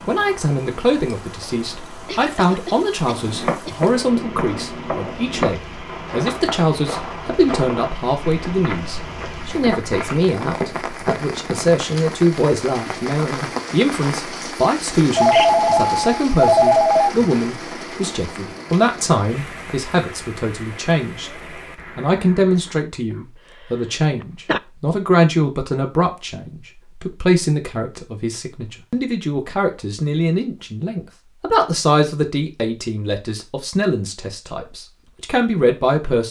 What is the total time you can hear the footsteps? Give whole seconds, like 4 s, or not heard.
9 s.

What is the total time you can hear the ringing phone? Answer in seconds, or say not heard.
2 s.